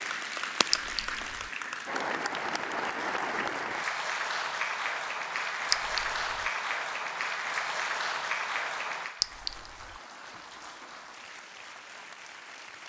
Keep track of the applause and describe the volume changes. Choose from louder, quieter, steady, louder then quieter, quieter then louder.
quieter.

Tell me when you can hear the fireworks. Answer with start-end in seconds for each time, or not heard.
not heard.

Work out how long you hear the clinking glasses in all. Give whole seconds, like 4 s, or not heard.
2 s.